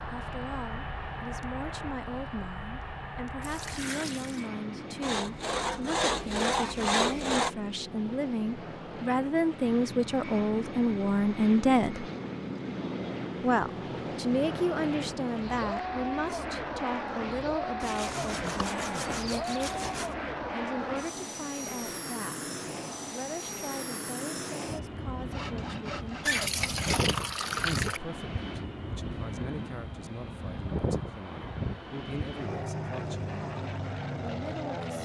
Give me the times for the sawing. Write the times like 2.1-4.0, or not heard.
5.0-7.5, 17.8-20.1, 25.3-27.1.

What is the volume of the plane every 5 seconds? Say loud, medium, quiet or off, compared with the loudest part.
medium, medium, loud, loud, loud, loud, loud.